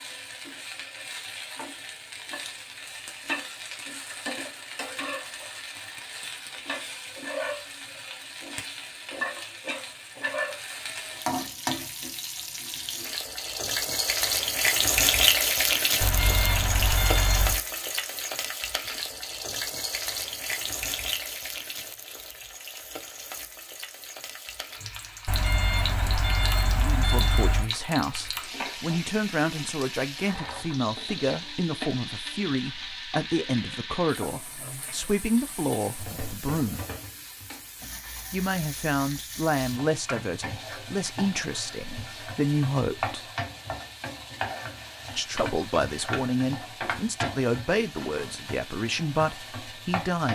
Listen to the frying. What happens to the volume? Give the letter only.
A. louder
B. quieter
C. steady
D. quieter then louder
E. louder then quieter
E.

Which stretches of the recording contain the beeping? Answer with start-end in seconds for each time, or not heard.
16.0-17.6, 25.2-27.7.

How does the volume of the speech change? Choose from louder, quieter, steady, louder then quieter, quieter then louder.
steady.